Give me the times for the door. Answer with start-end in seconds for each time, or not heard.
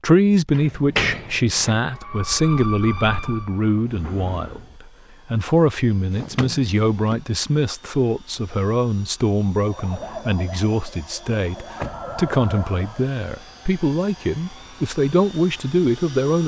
0.5-1.8, 6.1-7.2, 11.8-12.4.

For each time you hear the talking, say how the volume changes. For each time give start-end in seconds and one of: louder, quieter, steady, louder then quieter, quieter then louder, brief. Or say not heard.
0.0-16.4 steady.